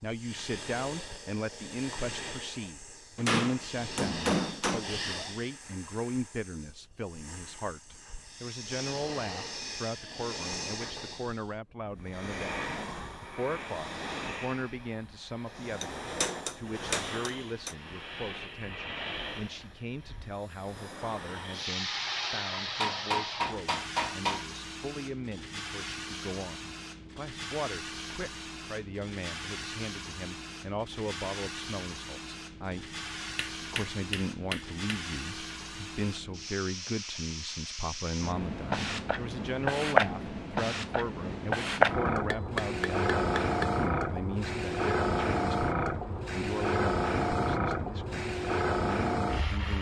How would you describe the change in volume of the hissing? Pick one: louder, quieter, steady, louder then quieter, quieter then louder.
louder.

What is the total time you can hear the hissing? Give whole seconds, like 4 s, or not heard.
50 s.